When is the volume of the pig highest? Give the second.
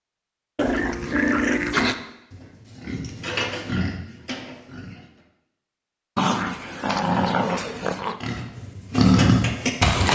9 s.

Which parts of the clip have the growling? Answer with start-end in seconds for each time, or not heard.
0.6-1.9, 6.2-8.2.